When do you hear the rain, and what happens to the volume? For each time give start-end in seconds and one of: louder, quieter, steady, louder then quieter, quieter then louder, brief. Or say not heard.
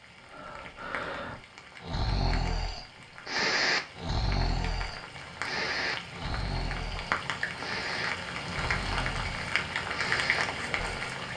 0.0-11.3 louder.